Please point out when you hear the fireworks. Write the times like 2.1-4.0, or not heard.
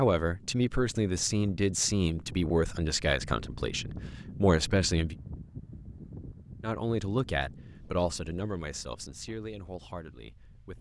not heard.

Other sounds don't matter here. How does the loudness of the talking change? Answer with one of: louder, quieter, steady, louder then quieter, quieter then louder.
quieter.